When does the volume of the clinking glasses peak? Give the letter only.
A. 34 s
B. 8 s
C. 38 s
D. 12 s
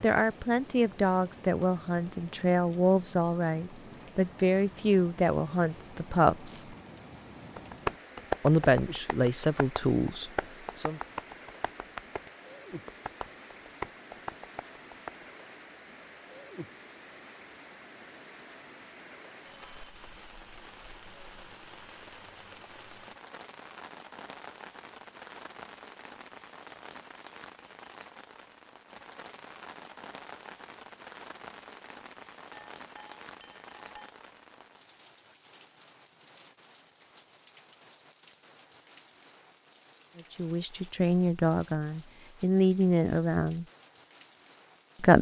A.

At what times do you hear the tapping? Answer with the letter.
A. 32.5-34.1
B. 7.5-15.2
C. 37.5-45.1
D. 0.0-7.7
B.